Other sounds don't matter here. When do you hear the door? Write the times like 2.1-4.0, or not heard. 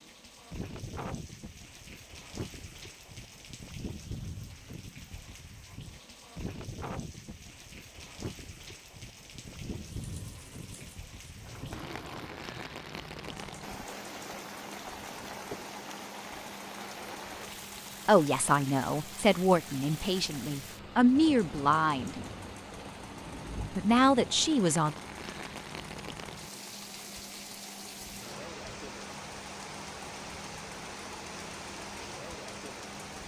not heard.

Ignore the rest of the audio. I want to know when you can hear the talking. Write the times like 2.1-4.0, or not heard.
18.1-22.1, 23.8-24.9.